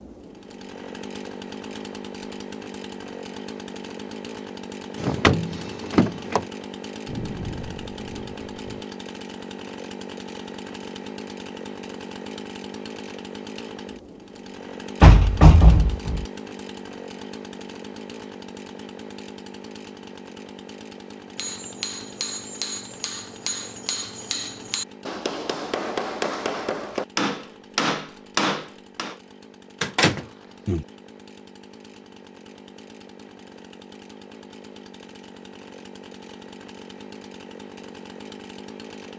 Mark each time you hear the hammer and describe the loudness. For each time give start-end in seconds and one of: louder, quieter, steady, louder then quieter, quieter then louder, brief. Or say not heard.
21.4-29.1 louder.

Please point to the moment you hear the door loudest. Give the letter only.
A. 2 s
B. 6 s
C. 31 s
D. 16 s
D.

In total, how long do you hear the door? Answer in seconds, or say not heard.
4 s.